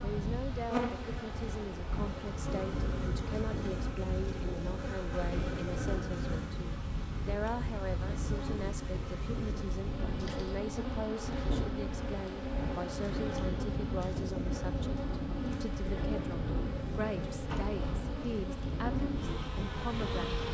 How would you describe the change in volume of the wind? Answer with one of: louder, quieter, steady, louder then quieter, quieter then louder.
steady.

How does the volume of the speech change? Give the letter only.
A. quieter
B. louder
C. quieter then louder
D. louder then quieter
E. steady
E.